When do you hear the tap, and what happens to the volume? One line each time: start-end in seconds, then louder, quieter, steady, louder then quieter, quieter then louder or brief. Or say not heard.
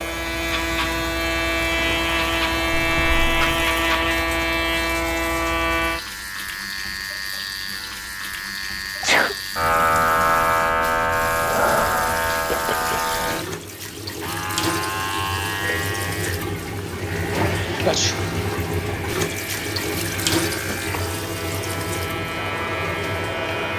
0.0-23.7 louder.